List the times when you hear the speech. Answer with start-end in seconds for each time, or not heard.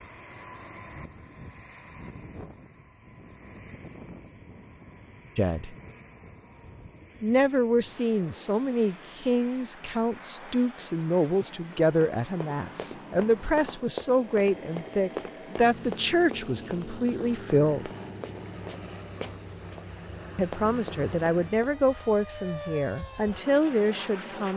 5.3-5.8, 7.2-17.9, 20.4-24.5.